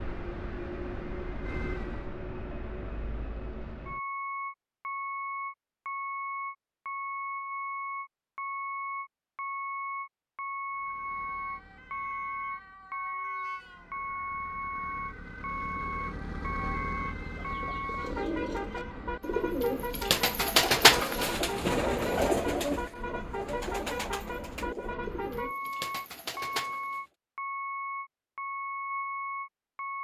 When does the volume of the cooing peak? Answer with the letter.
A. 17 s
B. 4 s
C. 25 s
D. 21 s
D.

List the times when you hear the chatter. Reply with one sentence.
The chatter can't be heard in this clip.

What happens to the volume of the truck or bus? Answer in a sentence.
The loudness of the truck or bus stays about the same.